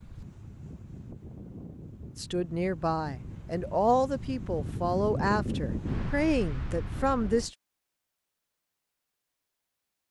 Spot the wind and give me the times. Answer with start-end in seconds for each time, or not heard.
0.0-7.5.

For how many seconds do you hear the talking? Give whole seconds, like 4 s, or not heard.
5 s.